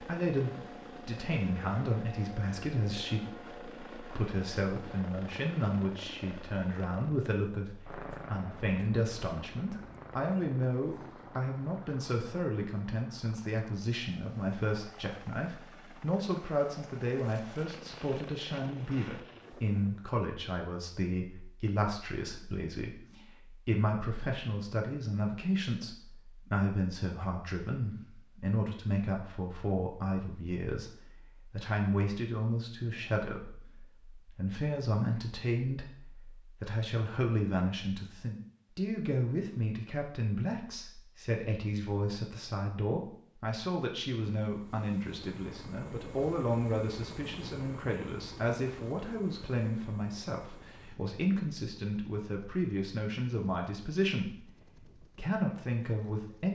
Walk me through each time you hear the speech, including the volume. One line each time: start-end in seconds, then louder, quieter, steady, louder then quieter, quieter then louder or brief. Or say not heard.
0.0-56.5 steady.